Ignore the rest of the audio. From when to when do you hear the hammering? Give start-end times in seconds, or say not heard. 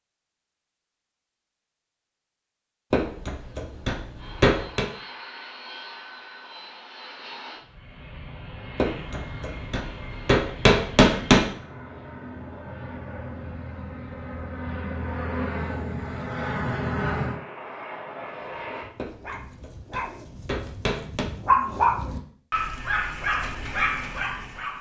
2.9-4.8, 8.8-11.4, 18.9-21.2.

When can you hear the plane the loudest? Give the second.
17 s.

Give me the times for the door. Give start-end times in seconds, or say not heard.
not heard.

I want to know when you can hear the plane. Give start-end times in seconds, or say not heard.
4.2-18.9.